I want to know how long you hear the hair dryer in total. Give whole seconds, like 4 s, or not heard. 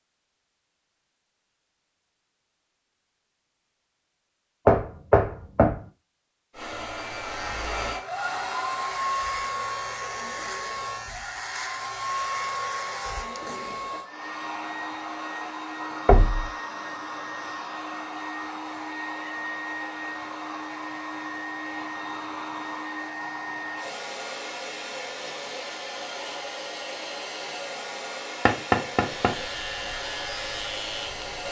25 s.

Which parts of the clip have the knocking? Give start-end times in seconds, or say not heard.
4.7-5.8, 16.1-16.5, 28.4-29.4.